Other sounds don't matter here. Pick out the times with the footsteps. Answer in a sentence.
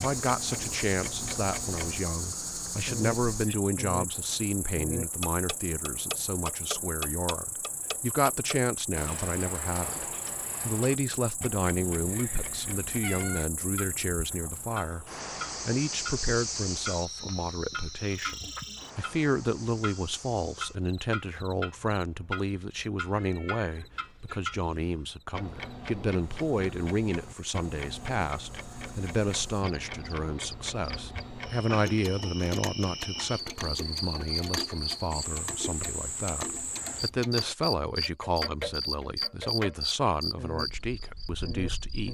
The footsteps can't be heard in this clip.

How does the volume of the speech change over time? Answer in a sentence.
The volume of the speech stays about the same.